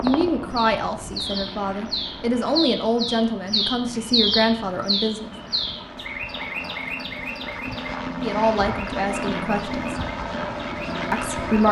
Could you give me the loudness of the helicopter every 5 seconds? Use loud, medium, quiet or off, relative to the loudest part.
medium, loud, loud.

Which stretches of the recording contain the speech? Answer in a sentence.
You can hear the speech from 0.0 to 5.3 s, from 8.2 to 9.9 s and from 11.1 to 11.6 s.